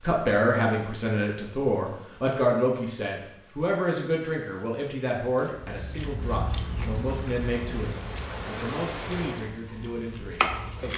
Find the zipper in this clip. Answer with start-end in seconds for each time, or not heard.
not heard.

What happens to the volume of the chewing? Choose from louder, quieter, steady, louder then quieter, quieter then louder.
quieter then louder.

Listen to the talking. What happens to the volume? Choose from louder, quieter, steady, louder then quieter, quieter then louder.
quieter.